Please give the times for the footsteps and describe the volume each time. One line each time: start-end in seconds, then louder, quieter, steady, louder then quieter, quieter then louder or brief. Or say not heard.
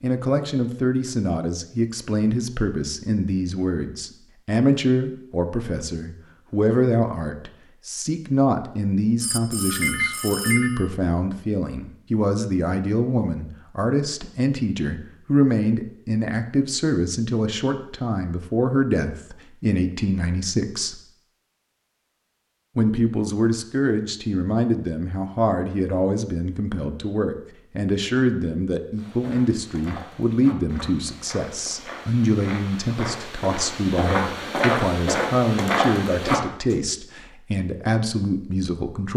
28.9-36.8 louder.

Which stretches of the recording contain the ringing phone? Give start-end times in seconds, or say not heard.
9.2-10.9.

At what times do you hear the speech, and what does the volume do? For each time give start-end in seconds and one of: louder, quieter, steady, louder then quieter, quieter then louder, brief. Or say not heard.
0.0-21.0 steady
22.8-39.1 steady.